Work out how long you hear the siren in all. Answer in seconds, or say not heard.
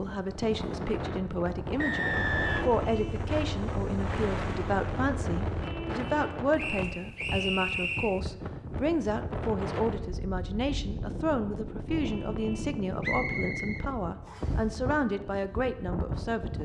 not heard.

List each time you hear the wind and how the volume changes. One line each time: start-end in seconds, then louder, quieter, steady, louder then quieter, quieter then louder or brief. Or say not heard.
0.0-16.6 steady.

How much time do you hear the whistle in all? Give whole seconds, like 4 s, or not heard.
4 s.